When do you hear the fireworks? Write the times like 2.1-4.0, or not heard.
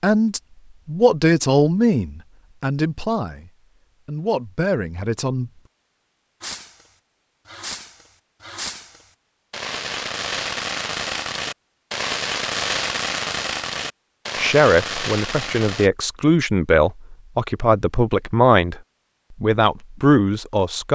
6.4-15.9.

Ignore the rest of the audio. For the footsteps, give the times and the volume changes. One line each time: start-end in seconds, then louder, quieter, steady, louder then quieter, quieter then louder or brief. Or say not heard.
not heard.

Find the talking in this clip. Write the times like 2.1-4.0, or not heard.
0.0-5.5, 14.3-18.8, 19.4-20.9.